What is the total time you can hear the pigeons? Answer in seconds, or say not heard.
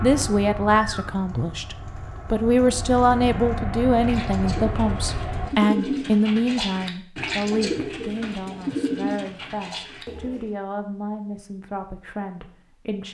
10 s.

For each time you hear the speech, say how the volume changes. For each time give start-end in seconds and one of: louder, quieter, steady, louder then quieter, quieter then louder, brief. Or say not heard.
0.0-13.1 quieter.